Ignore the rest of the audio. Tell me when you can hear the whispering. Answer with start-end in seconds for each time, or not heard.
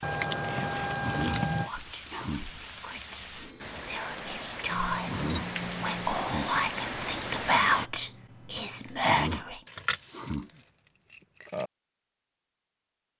0.5-9.6.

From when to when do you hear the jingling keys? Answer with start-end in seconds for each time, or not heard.
0.0-1.7, 4.7-6.2, 9.7-11.7.